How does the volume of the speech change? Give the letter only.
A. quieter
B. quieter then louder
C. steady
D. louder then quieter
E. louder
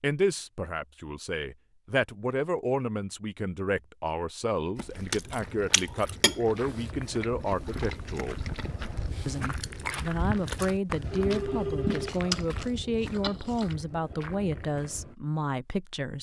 C.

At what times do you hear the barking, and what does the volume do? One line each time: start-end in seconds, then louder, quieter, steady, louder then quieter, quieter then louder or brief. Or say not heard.
not heard.